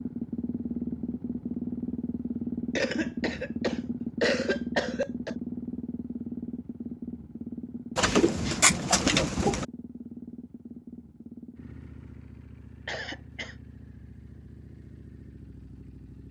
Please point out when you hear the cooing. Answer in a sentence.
The cooing can be heard from 8.0 to 9.7 s.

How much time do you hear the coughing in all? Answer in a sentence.
The coughing can be heard for 3 seconds in total.